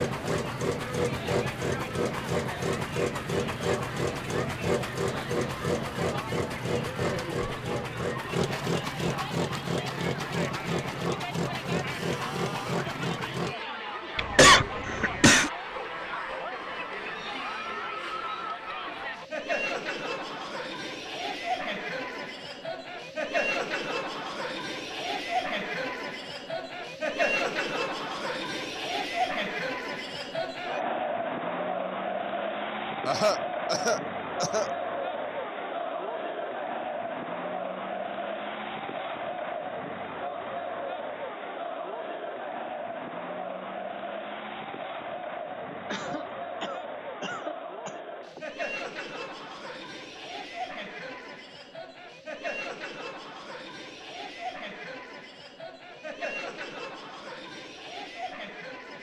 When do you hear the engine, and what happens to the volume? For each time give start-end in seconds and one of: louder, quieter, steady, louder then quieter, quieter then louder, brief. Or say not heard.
0.0-13.6 steady.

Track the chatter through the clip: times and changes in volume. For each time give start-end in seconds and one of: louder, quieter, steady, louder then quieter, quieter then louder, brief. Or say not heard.
0.0-58.9 louder then quieter.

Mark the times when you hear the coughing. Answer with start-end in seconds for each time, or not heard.
14.2-15.5, 33.0-34.7, 45.9-48.4.